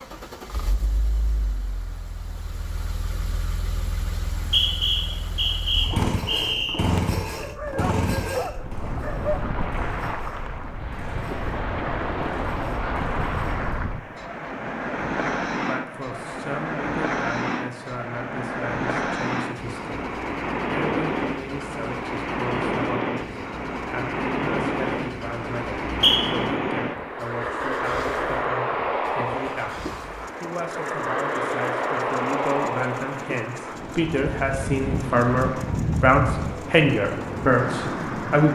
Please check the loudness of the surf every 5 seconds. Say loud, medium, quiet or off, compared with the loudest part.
quiet, medium, loud, loud, loud, loud, loud, loud.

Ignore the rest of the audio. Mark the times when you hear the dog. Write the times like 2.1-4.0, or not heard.
7.3-9.4.